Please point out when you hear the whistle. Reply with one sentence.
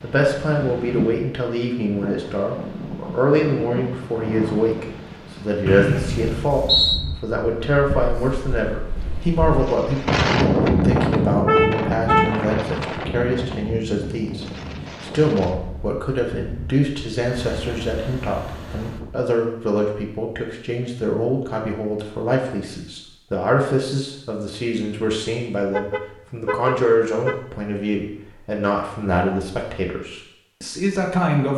The whistle can be heard from 5.7 to 7.0 s.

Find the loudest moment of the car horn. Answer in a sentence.
The volume of the car horn peaks at 12 seconds.